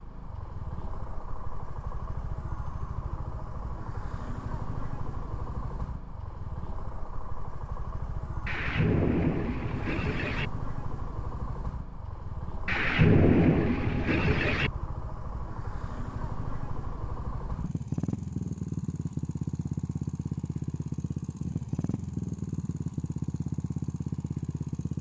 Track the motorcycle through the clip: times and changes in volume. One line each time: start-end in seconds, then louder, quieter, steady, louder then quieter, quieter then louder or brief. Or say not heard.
0.0-24.9 louder.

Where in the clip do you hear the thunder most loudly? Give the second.
13 s.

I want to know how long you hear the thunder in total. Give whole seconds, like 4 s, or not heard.
4 s.